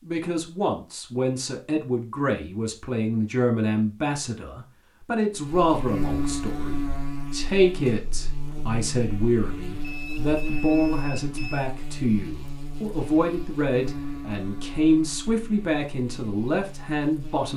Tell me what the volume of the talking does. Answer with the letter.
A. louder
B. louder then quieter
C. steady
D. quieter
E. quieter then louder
C.